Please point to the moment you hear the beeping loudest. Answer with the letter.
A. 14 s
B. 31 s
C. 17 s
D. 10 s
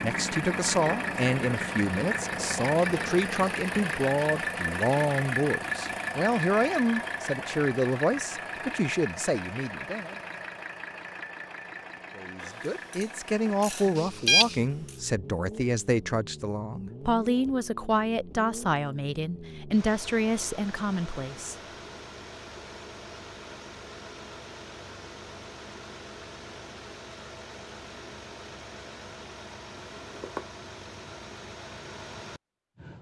A.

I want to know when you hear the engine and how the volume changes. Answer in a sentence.
The engine can be heard from 0.0 to 32.9 s, getting quieter.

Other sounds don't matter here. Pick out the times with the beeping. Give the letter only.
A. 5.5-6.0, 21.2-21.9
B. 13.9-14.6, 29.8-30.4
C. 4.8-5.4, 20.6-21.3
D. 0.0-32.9
B.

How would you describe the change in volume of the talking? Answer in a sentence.
The loudness of the talking stays about the same.